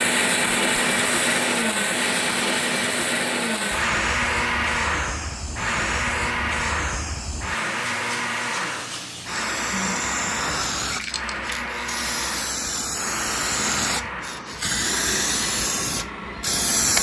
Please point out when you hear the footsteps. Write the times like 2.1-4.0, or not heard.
not heard.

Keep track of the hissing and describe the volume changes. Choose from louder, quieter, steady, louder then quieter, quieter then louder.
louder.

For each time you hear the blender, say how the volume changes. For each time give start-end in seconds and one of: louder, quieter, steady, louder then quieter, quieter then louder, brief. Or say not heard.
0.0-16.9 quieter.